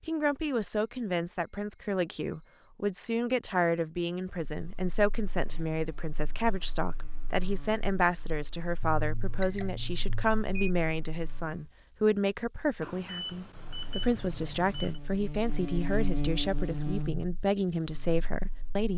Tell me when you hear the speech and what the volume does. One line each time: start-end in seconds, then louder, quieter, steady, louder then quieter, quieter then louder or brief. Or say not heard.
0.0-18.9 steady.